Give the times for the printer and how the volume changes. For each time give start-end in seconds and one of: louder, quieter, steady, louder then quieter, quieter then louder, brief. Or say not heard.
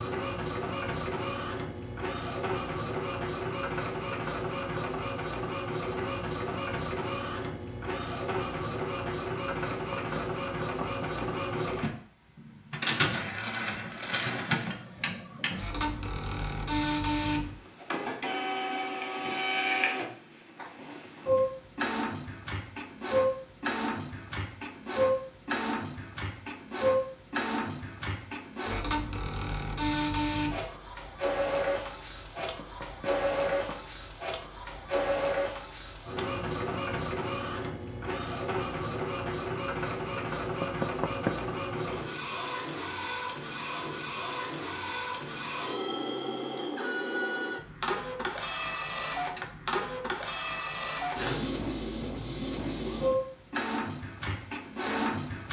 0.0-55.4 steady.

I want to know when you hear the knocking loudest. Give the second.
41 s.